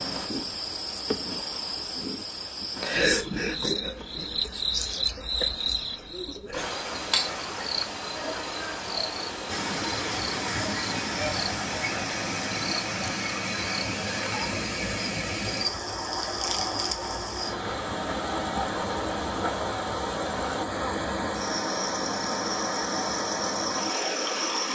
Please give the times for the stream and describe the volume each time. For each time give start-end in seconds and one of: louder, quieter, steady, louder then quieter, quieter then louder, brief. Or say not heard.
9.4-24.6 steady.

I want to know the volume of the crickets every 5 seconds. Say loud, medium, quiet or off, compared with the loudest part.
loud, loud, medium, medium, medium.